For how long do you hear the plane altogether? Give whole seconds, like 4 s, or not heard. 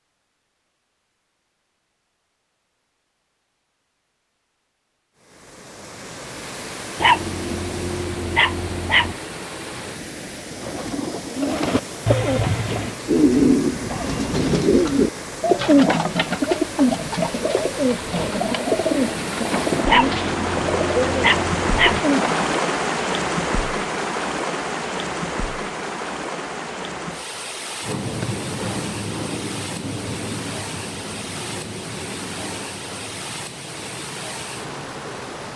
8 s.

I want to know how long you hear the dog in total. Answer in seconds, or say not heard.
4 s.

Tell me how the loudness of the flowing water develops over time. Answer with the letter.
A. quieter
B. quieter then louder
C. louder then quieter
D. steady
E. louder
C.